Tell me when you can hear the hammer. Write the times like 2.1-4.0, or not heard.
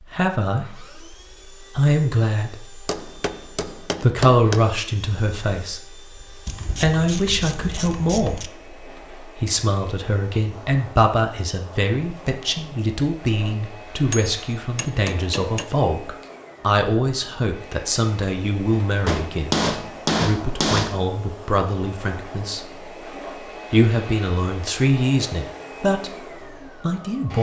2.9-4.7, 14.1-15.7, 19.1-21.1.